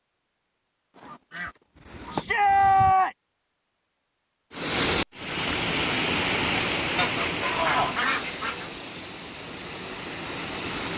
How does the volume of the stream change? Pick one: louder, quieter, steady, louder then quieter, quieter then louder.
quieter.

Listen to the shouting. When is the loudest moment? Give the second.
3 s.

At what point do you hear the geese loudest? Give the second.
8 s.